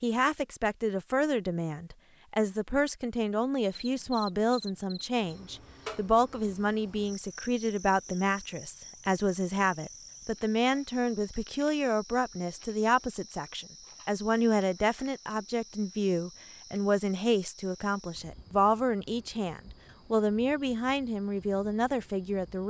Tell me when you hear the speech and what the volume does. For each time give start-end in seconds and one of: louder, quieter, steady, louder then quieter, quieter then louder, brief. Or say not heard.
0.0-22.6 steady.